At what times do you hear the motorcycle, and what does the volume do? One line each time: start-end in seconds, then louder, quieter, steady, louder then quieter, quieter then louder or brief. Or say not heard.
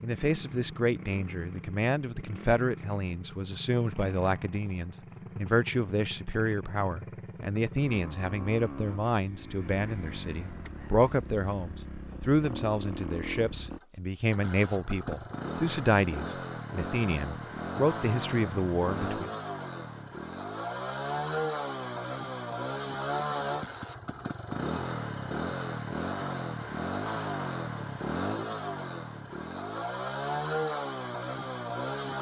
0.0-32.1 louder.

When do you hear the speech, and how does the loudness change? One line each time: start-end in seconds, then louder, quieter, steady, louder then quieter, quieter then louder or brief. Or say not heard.
0.0-19.3 steady.